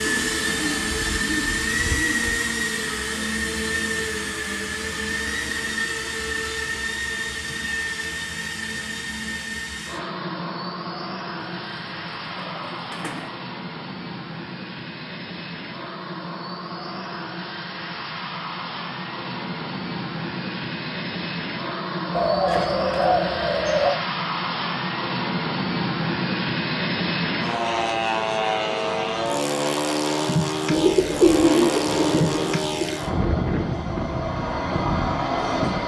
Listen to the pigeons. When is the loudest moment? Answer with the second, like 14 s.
31 s.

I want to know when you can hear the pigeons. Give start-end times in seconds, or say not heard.
0.0-2.3, 11.4-13.3, 22.1-24.0, 30.7-33.0.